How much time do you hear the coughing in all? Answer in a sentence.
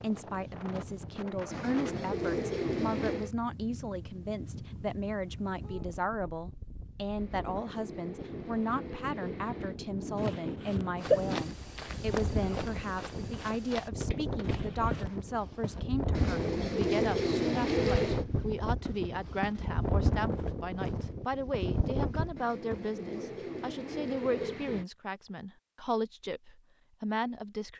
You can hear the coughing for 2 seconds altogether.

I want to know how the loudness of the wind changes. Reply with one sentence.
The volume of the wind goes up.